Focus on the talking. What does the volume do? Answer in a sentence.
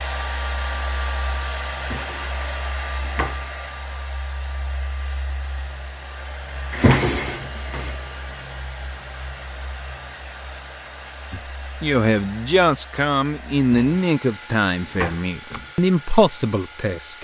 The volume of the talking goes down, then up.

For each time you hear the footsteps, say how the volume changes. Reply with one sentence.
The footsteps can't be heard in this clip.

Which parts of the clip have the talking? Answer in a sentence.
You can hear the talking from 11.3 to 17.1 s.